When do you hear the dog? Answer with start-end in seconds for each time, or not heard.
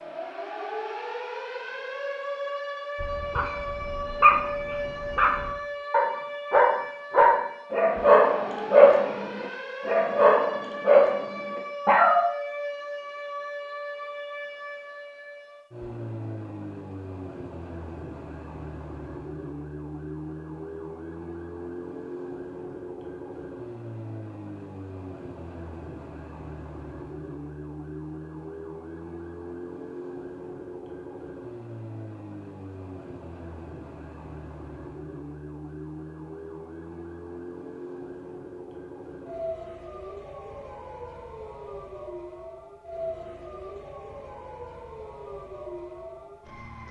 3.0-12.2.